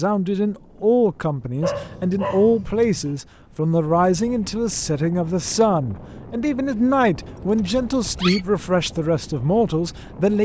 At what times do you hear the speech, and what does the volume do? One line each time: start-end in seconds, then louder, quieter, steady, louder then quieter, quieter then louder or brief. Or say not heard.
0.0-10.3 steady.